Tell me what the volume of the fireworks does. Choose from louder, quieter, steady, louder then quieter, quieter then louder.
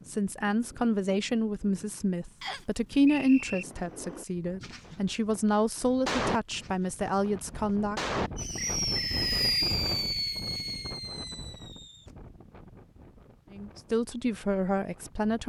louder then quieter.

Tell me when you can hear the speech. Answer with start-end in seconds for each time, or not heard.
0.1-8.0, 13.5-15.4.